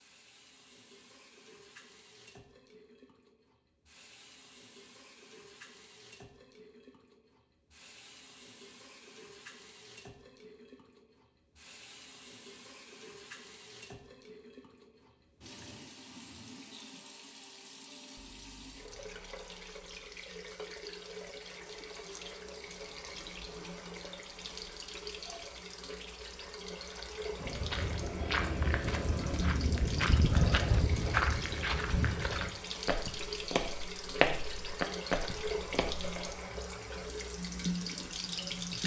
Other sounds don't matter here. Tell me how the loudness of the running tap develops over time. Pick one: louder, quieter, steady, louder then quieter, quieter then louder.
louder.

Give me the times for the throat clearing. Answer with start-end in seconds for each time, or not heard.
not heard.